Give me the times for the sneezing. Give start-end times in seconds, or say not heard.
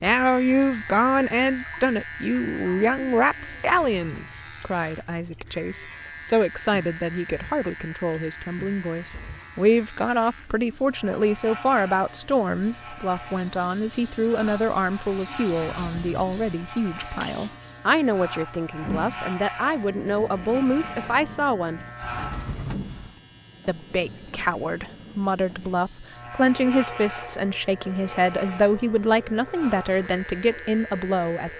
17.0-17.6.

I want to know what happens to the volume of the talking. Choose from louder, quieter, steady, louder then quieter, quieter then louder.
steady.